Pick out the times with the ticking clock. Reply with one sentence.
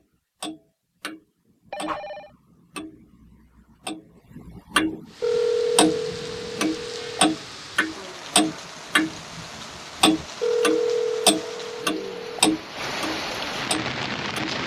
The ticking clock can be heard from 0.4 to 5.0 s and from 5.8 to 14.6 s.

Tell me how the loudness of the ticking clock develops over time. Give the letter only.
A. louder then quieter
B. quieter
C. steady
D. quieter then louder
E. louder
E.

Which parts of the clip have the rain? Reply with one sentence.
You can hear the rain from 5.0 to 14.6 s.